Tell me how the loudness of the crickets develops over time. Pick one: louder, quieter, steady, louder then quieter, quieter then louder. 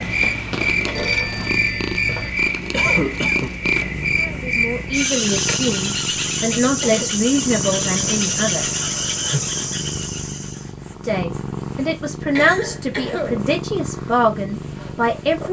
steady.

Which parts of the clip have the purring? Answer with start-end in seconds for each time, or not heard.
0.0-15.4.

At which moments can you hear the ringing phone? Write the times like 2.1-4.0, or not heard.
0.9-2.3, 8.8-9.6.